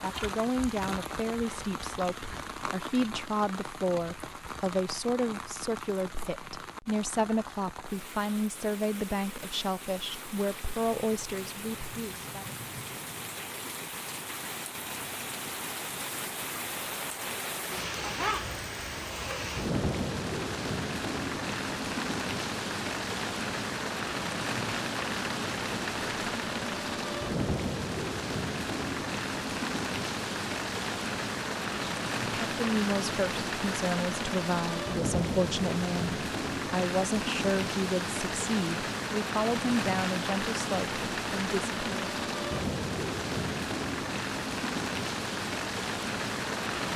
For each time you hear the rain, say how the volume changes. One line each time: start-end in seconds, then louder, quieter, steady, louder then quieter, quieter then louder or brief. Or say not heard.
0.0-46.9 louder.